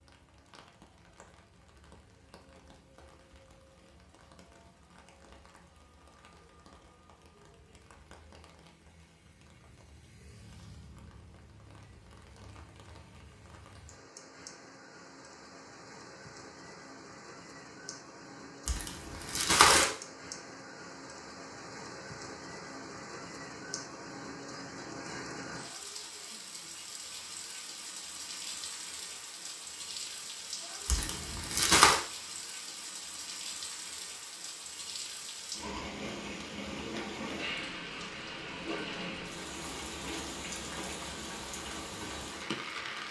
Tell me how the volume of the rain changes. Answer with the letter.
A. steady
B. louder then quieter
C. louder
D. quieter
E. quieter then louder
C.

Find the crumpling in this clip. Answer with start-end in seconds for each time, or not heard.
18.6-19.9, 30.9-32.0.